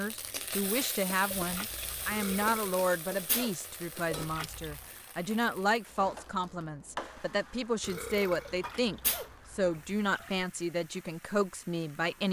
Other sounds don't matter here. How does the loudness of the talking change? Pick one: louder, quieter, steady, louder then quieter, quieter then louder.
steady.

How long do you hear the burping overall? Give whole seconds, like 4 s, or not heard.
3 s.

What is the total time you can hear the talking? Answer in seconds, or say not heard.
12 s.